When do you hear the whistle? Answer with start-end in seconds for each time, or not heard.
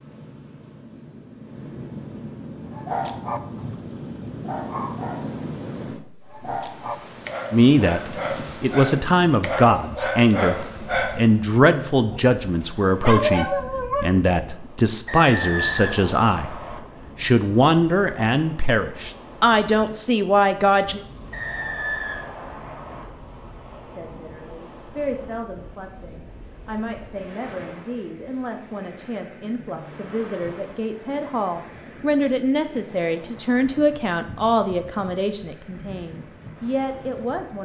15.1-16.8, 21.3-23.1.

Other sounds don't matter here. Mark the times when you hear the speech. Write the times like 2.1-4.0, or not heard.
7.5-21.0, 23.9-37.6.